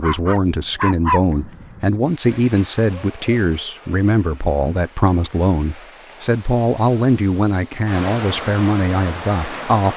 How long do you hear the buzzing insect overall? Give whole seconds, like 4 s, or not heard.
not heard.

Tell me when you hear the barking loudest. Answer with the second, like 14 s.
1 s.